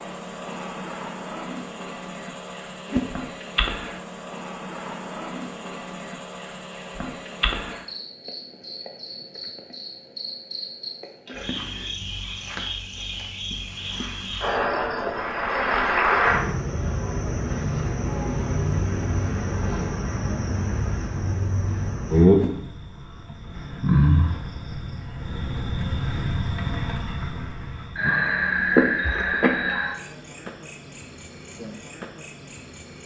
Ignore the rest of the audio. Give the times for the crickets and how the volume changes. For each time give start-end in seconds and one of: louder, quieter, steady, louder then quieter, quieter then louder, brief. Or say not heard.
0.0-33.0 louder.